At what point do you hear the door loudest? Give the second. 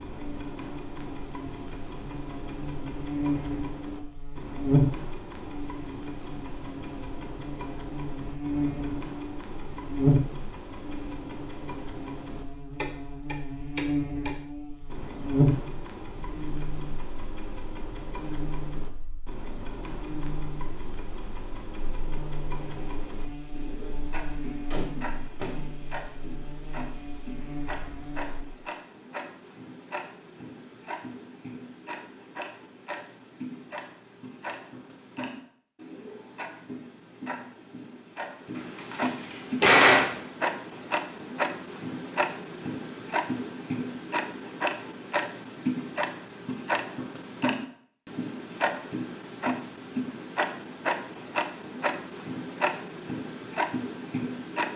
40 s.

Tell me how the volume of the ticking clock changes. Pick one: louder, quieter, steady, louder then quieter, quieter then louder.
louder.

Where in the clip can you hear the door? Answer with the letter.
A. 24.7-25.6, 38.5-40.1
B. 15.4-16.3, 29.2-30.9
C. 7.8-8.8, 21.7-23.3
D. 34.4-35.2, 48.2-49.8
A.